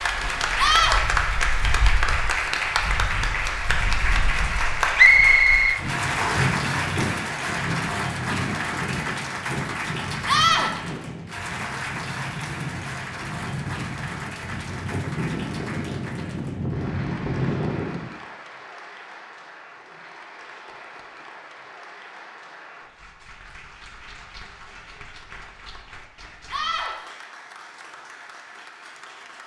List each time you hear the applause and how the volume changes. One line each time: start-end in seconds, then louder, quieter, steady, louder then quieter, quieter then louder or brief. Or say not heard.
0.0-29.4 quieter.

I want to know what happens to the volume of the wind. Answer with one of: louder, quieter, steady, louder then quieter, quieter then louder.
louder.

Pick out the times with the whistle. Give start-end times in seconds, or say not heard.
5.0-6.5.